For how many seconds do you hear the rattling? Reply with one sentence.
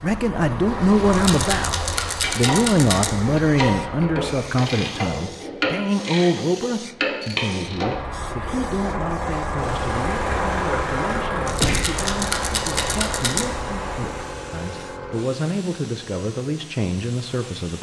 You can hear the rattling for 4 seconds altogether.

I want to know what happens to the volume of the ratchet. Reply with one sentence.
The volume of the ratchet goes up.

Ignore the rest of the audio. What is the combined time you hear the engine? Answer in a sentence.
You can hear the engine for 11 seconds altogether.